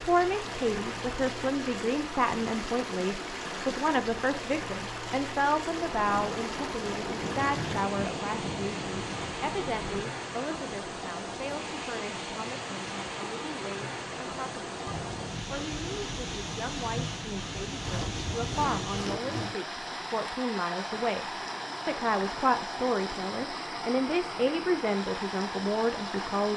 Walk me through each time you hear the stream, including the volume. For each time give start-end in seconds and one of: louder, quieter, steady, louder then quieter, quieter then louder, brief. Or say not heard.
0.0-26.5 steady.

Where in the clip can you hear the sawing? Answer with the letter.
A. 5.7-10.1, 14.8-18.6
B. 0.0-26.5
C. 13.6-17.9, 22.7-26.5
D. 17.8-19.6
D.